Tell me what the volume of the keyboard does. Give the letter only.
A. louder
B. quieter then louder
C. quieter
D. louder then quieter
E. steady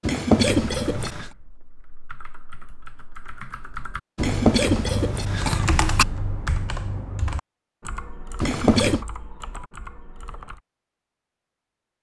D.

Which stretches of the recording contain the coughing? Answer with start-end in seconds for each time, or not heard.
0.0-1.2, 4.2-6.0, 8.4-9.1.